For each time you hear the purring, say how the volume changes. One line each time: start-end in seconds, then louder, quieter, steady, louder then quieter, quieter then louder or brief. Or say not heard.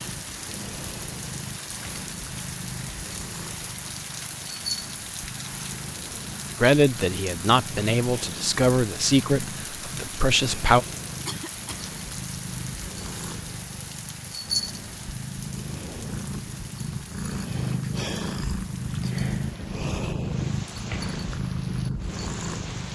0.0-22.9 louder.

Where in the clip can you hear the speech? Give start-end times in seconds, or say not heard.
6.6-10.8.